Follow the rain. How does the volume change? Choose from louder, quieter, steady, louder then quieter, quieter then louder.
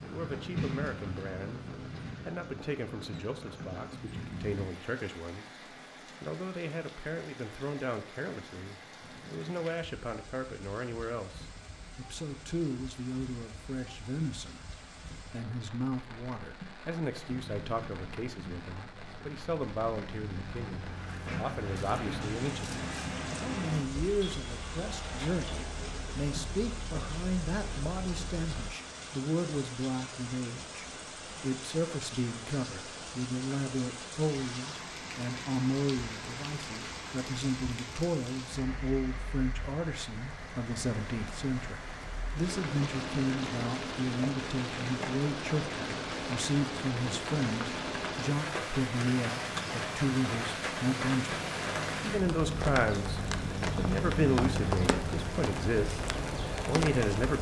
louder.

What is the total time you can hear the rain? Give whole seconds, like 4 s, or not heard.
57 s.